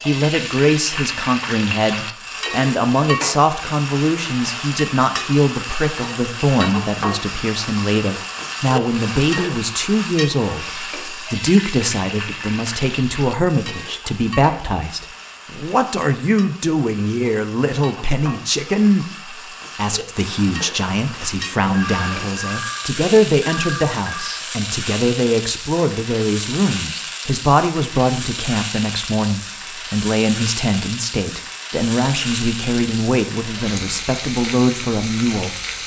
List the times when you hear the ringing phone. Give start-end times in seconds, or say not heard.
21.7-24.4.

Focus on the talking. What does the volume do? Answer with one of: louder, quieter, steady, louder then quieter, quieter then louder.
steady.